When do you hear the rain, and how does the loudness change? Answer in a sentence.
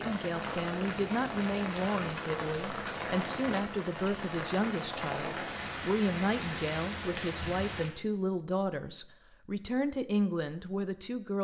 The rain can be heard from 0.0 to 7.9 s, at a steady volume.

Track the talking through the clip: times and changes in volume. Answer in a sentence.
The talking can be heard from 0.0 to 11.3 s, at a steady volume.